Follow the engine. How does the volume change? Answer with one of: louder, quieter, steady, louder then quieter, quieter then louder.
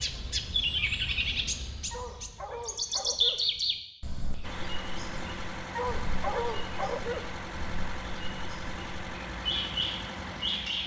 steady.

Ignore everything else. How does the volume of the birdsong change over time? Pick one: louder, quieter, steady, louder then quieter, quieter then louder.
quieter then louder.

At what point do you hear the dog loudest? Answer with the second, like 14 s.
6 s.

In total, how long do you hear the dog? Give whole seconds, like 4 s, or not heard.
3 s.